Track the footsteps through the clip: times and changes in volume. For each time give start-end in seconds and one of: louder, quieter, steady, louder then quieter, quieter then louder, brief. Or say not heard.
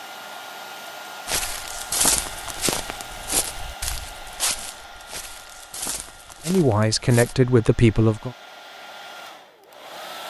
1.2-7.3 quieter.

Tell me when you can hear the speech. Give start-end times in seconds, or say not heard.
6.5-8.3.